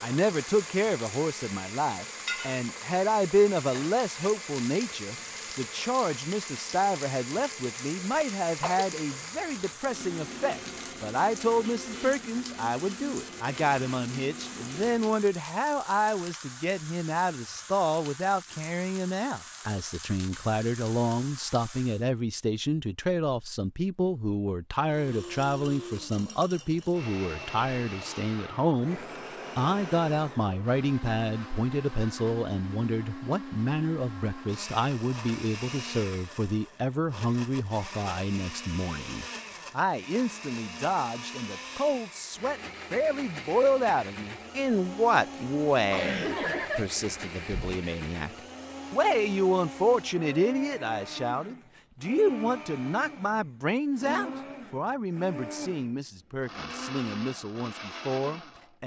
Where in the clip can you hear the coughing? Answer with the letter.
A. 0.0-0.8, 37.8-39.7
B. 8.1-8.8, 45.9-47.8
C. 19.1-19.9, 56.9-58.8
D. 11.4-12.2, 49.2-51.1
B.